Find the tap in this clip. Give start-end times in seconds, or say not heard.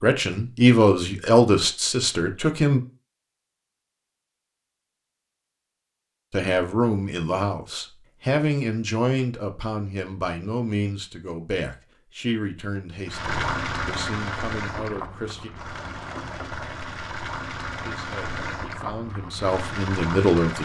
13.1-20.6.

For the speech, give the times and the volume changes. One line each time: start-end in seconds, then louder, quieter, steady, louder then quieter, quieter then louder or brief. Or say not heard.
0.0-2.8 brief
6.3-15.5 quieter
17.8-20.6 brief.